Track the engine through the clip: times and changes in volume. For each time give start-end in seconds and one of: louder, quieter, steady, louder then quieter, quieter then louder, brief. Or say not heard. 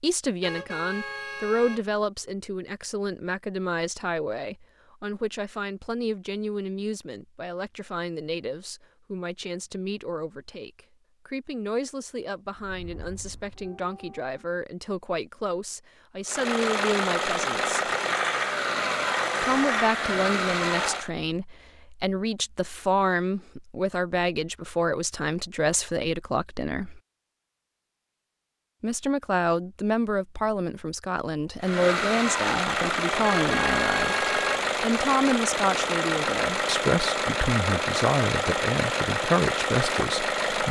16.2-21.1 steady
31.6-40.6 steady.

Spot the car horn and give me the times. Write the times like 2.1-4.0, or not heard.
0.4-1.9, 33.2-34.6.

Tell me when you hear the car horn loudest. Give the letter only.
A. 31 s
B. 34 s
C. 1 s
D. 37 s
B.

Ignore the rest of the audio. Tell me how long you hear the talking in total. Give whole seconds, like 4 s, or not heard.
37 s.